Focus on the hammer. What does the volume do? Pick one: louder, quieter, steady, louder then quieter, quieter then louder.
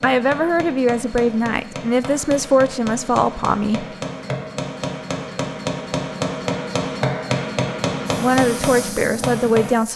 louder.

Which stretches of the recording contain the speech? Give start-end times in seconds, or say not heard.
0.0-3.9, 8.2-9.9.